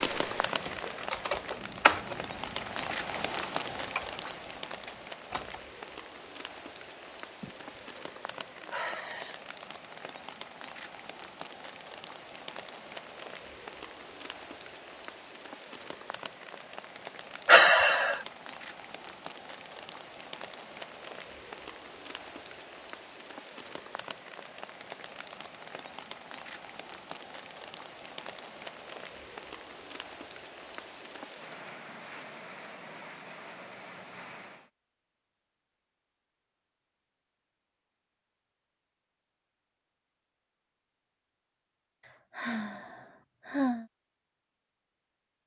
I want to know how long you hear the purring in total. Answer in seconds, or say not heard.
not heard.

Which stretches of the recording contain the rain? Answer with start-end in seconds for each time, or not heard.
0.0-34.7.